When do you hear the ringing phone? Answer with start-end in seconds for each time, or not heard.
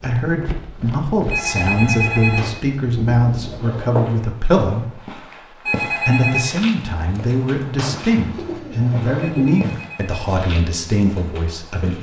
1.3-2.5, 5.7-6.5, 9.2-10.3.